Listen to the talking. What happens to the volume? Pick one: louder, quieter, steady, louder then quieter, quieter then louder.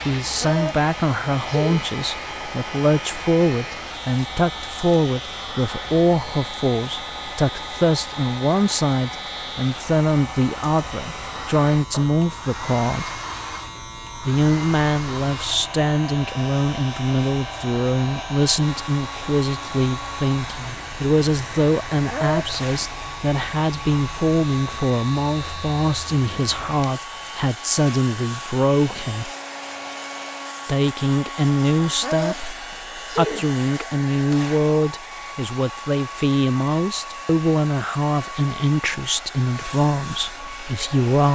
steady.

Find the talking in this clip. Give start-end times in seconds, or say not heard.
0.1-13.2, 14.2-29.3, 30.6-41.3.